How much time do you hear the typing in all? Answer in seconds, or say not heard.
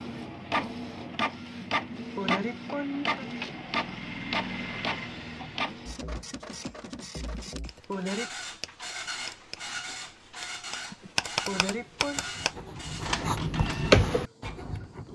5 s.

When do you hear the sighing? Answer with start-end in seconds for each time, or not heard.
1.6-3.2, 7.3-8.3, 10.9-12.2.